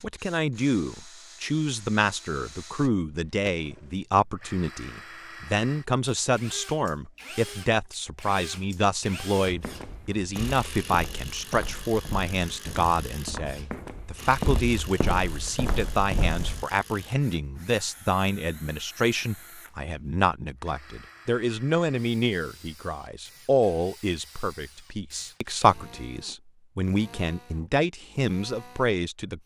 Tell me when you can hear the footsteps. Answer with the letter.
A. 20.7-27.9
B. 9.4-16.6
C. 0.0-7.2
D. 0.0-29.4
B.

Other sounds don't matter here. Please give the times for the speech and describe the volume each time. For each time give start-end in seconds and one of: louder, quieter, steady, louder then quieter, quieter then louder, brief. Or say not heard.
0.0-29.4 steady.